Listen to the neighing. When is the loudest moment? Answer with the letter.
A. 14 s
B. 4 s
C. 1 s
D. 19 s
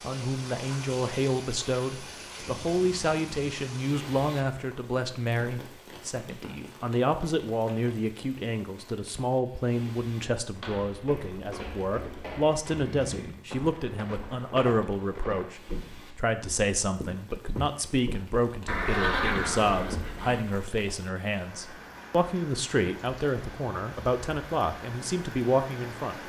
D.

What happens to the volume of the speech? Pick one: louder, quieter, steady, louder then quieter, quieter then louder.
steady.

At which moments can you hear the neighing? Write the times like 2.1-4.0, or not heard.
2.5-3.4, 12.7-13.4, 18.6-20.4.